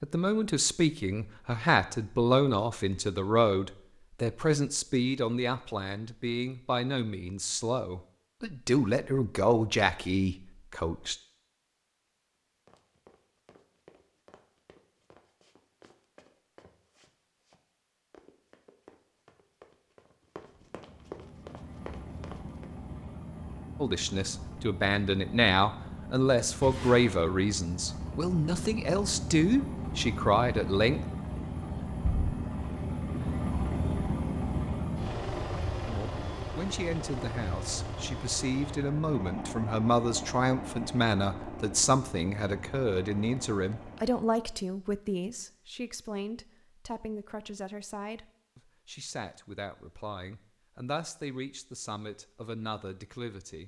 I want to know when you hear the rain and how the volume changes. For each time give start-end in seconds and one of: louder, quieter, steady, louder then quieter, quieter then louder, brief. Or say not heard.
not heard.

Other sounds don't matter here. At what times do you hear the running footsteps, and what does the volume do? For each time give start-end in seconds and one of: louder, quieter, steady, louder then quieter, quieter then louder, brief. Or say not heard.
12.7-22.8 louder.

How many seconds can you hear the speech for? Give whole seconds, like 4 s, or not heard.
36 s.